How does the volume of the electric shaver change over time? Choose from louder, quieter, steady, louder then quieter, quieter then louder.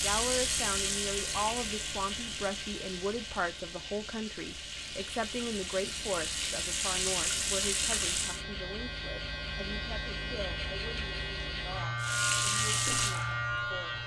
quieter then louder.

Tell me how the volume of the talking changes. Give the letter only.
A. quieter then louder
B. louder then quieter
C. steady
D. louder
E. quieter
E.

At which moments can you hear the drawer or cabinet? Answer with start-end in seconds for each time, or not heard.
not heard.